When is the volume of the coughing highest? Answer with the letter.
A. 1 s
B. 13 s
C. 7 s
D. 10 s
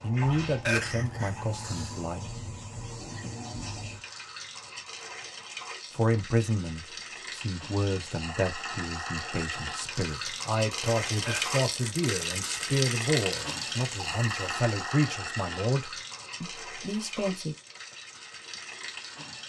A.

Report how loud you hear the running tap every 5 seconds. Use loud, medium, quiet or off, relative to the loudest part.
medium, medium, loud, medium.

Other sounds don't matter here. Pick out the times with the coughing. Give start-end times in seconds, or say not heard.
0.7-2.0, 11.2-12.0.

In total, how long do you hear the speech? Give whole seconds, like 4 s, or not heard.
14 s.